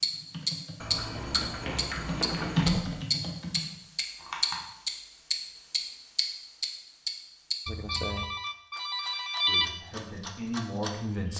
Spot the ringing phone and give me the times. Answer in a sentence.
The ringing phone can be heard from 0.8 to 2.8 s and from 7.7 to 9.7 s.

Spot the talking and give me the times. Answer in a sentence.
You can hear the talking from 9.4 to 11.3 s.